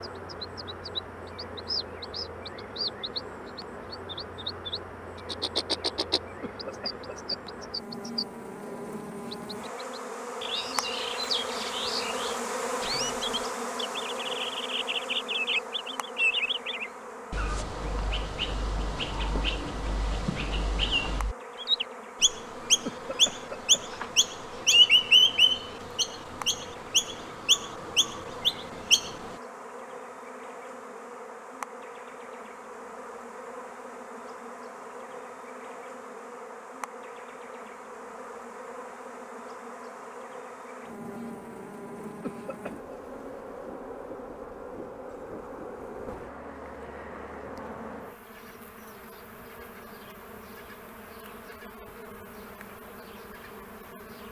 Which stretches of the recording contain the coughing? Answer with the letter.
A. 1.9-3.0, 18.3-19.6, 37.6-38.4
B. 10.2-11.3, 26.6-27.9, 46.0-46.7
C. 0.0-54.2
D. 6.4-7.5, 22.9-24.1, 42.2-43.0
D.